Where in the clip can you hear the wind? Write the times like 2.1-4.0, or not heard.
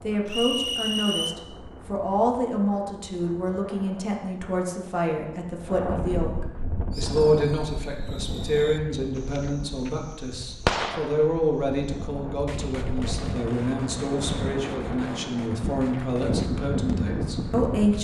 0.0-17.9.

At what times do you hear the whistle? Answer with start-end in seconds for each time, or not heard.
0.2-1.4.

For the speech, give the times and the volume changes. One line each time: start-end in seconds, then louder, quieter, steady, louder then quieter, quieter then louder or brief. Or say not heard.
0.0-17.9 steady.